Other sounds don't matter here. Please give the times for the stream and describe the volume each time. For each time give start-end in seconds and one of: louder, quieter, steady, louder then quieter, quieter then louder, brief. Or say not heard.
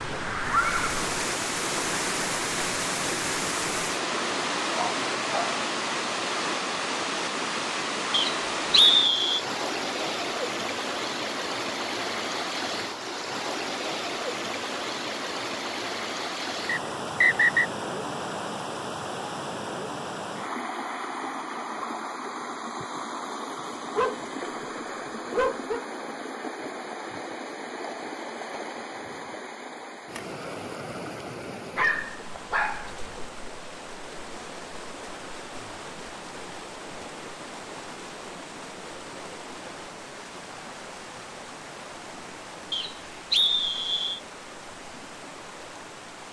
0.0-46.2 quieter.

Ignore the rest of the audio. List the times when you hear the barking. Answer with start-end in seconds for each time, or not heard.
4.8-5.6, 23.6-25.9, 31.8-33.2.